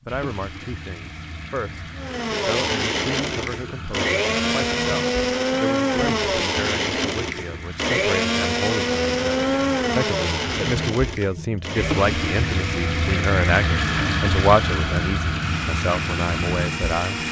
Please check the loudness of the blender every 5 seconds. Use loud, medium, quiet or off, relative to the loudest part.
loud, loud, medium, medium.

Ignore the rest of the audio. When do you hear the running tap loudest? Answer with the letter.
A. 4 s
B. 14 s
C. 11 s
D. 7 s
B.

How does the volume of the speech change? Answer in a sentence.
The volume of the speech goes up.